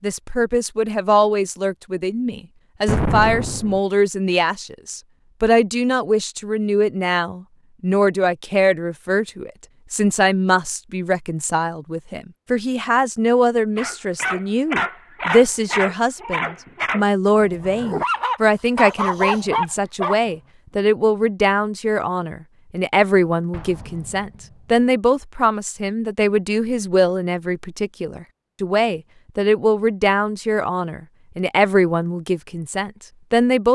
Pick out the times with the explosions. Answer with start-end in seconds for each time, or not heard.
2.9-3.8, 23.5-24.4.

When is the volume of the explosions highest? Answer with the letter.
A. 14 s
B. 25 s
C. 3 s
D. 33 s
C.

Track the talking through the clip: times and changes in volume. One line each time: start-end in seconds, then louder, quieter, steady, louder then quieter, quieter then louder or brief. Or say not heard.
0.0-33.7 steady.